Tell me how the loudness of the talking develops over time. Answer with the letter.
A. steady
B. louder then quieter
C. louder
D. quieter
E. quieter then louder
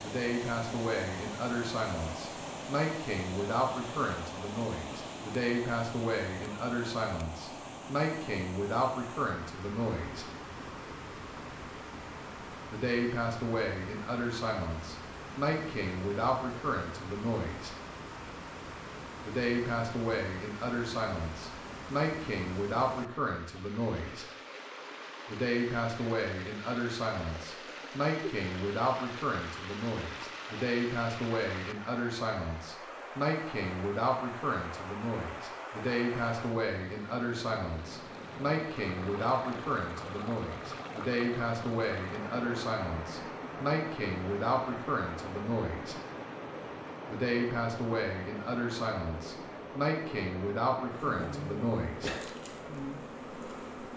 A.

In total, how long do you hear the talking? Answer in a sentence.
The talking can be heard for 46 seconds in total.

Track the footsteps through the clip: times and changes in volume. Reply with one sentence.
The footsteps can't be heard in this clip.